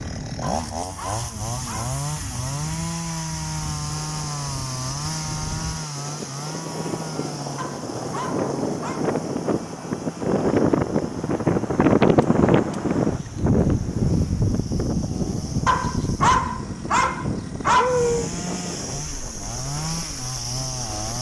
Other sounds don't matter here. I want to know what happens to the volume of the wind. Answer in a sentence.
The loudness of the wind goes up, then down.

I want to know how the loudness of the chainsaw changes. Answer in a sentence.
The loudness of the chainsaw goes down, then up.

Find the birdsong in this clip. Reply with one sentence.
You can't hear the birdsong here.